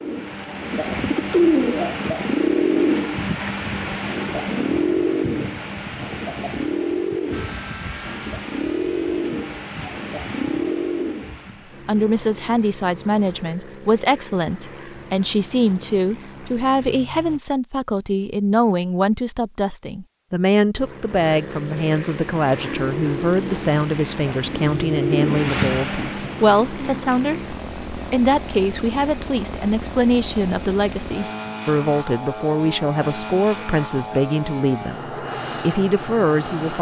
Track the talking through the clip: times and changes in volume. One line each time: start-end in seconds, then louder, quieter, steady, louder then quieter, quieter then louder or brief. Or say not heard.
11.8-36.7 steady.